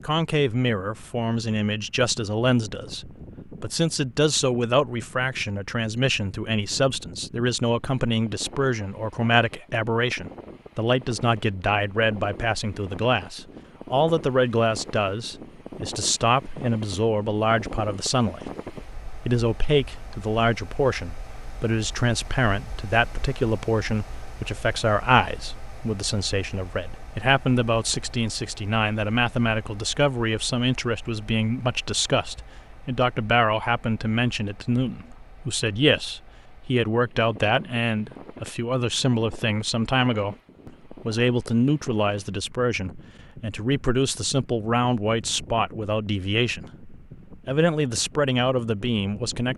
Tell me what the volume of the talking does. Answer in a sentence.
The volume of the talking stays about the same.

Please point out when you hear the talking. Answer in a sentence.
You can hear the talking from 0.0 to 49.5 s.